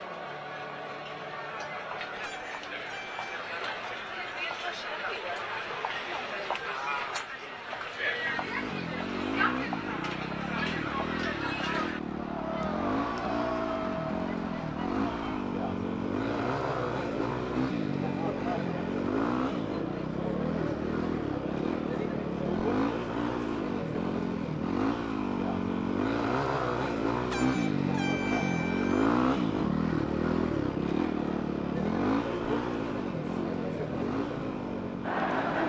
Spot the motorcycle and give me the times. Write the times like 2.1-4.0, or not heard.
8.2-35.6.